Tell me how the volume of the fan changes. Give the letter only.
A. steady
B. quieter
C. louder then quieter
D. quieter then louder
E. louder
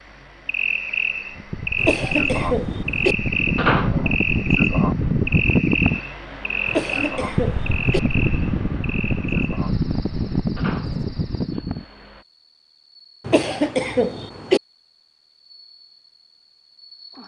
E.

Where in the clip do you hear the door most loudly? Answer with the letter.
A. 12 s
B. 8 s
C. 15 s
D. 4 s
D.